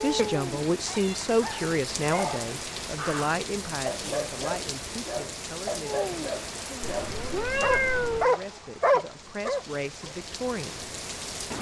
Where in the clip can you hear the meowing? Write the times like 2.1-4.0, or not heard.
0.1-1.4, 6.8-8.3.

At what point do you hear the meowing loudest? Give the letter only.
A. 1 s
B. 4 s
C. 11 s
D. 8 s
D.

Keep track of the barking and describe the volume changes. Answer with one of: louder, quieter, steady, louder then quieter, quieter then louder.
louder.